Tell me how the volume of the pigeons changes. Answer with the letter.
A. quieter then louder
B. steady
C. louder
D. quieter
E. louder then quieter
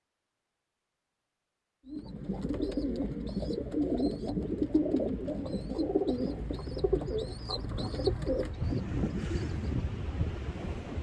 B.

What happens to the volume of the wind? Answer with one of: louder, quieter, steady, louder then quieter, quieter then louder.
louder.